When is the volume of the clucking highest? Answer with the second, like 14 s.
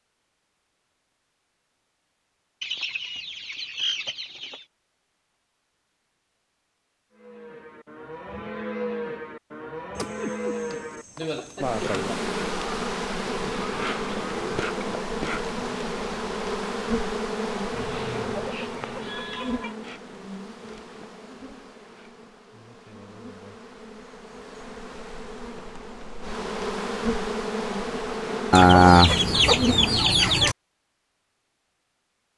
29 s.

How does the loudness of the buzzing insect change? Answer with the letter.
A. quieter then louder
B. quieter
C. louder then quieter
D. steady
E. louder
A.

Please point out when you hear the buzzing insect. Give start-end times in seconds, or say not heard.
11.6-30.0.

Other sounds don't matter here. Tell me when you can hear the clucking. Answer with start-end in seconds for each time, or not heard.
2.6-4.7, 9.9-11.8, 17.7-19.8, 28.5-30.6.